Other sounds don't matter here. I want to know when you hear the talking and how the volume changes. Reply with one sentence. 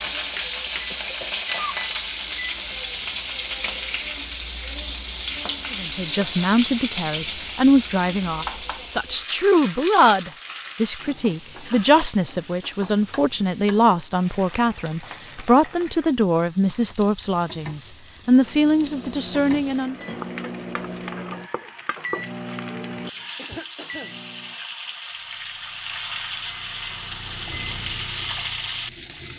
You can hear the talking from 5.8 to 19.9 s, at a steady volume.